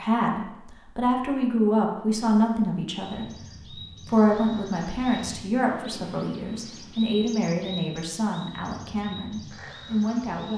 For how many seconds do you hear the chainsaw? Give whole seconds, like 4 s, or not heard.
not heard.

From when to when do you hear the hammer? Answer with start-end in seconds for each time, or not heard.
not heard.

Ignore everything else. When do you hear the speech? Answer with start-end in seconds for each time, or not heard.
0.0-10.5.